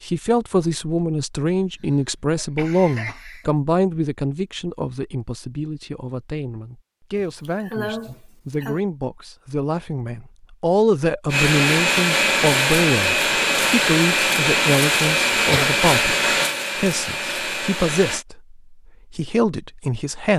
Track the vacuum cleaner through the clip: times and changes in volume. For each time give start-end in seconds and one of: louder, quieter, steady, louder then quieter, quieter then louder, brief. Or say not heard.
11.3-18.2 quieter.